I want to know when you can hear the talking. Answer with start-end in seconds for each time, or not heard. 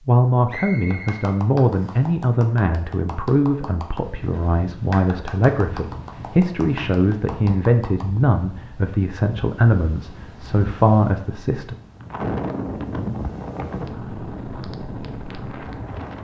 0.1-11.8.